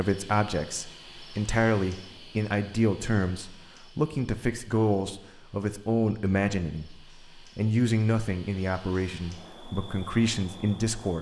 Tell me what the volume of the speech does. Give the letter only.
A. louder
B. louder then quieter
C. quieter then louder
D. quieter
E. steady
E.